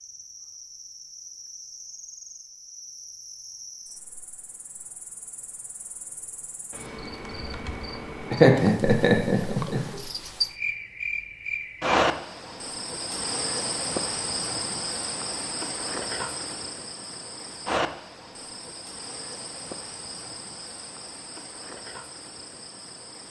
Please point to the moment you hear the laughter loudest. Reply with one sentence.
The volume of the laughter peaks at 9 seconds.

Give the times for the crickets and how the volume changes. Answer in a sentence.
The crickets can be heard from 0.0 to 23.2 s, getting louder then quieter.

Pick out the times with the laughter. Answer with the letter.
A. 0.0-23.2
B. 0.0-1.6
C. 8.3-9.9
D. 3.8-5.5
C.